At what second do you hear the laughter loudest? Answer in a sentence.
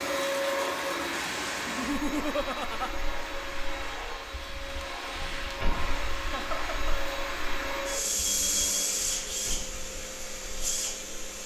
The volume of the laughter peaks at 2 seconds.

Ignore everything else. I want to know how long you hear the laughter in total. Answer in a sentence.
You can hear the laughter for 2 seconds altogether.